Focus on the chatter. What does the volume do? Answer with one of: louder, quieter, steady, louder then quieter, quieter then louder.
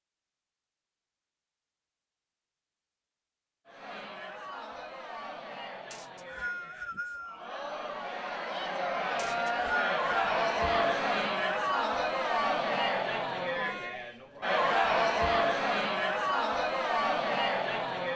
louder.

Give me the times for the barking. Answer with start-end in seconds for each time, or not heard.
not heard.